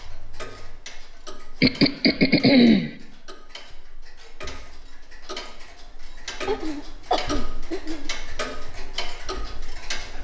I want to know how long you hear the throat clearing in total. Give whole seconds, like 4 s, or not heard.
3 s.